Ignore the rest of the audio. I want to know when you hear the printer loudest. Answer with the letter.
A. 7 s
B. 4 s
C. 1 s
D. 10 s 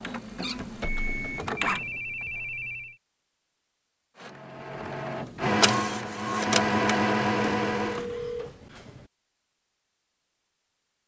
A.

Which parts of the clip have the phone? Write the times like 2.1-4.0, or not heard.
0.8-3.0, 7.3-9.1.